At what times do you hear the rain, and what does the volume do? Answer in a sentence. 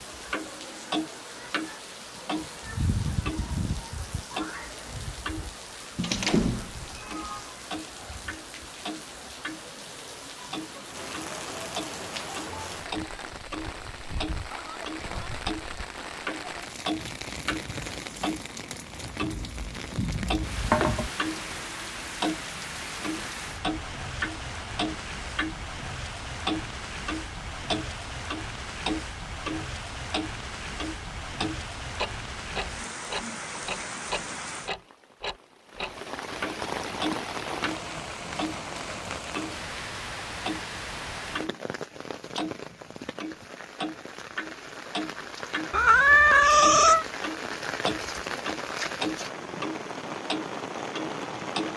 The rain can be heard from 0.0 to 51.7 s, at a steady volume.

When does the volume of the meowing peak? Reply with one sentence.
The loudest moment of the meowing is at 46 seconds.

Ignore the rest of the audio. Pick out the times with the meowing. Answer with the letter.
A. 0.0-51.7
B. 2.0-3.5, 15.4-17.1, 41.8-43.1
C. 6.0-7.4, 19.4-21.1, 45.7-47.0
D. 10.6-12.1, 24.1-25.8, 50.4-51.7
C.